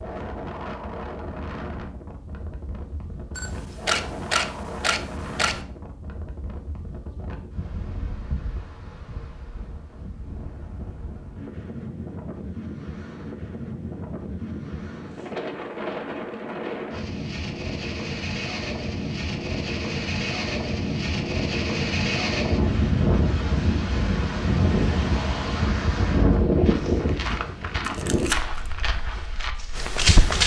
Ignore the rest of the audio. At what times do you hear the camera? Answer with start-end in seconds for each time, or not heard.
3.4-5.6, 27.8-28.7.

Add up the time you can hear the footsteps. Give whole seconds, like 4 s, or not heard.
4 s.